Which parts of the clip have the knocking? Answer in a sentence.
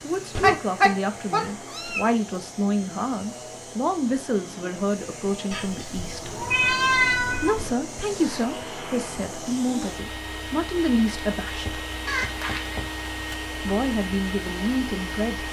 The knocking can be heard from 11.7 to 13.0 s.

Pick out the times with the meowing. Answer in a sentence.
You can hear the meowing from 0.3 to 2.1 s, from 5.5 to 7.8 s and from 12.1 to 12.8 s.